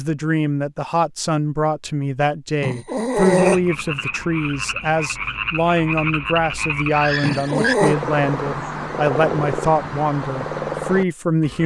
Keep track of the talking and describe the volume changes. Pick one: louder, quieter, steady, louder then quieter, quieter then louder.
steady.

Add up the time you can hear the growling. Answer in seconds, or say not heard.
2 s.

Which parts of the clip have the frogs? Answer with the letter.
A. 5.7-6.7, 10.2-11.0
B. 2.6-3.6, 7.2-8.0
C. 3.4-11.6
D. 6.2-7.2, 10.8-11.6
C.